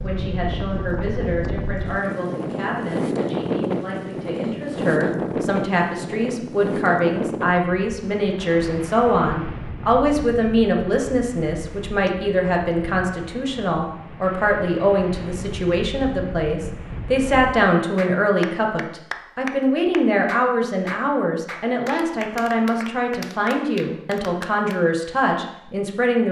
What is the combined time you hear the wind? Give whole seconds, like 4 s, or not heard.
18 s.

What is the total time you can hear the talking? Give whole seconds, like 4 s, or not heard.
26 s.